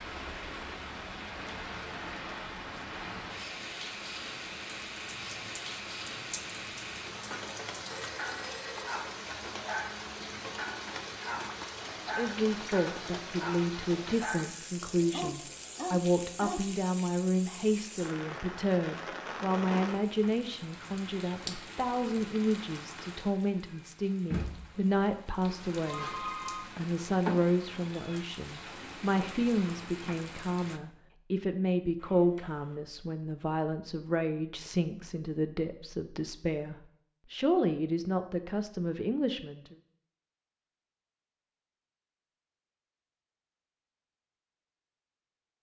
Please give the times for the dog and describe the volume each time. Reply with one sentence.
You can hear the dog from 5.3 to 16.7 s, getting louder.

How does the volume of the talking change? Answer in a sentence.
The loudness of the talking stays about the same.